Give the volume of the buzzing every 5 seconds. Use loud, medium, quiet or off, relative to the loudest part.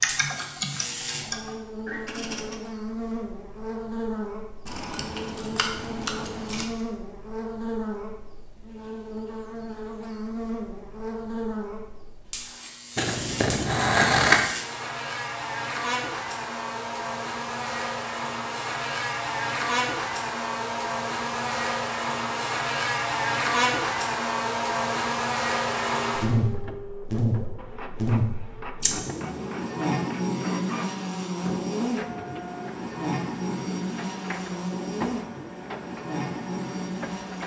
medium, medium, medium, loud, loud, loud, loud, medium.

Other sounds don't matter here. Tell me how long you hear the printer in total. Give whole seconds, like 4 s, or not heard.
12 s.